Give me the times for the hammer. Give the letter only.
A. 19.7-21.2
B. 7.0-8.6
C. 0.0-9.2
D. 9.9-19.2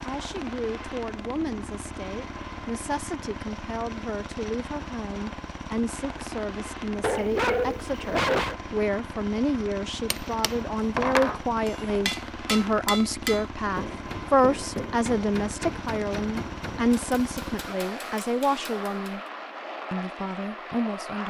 D.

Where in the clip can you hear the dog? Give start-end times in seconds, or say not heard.
7.0-8.6.